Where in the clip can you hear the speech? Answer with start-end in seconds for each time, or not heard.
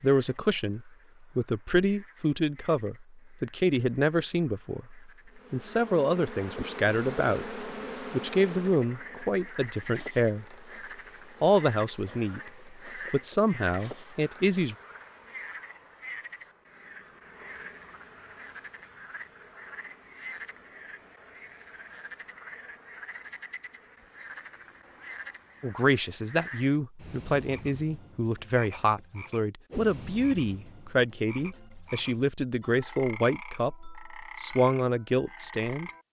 0.0-10.6, 11.4-14.8, 25.6-35.9.